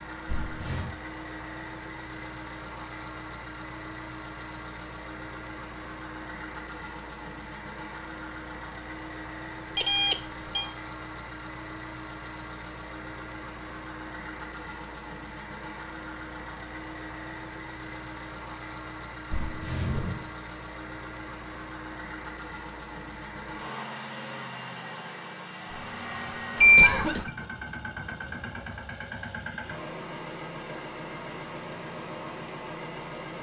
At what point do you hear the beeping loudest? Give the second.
27 s.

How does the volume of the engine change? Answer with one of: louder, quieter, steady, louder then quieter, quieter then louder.
steady.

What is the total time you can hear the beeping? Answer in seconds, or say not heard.
2 s.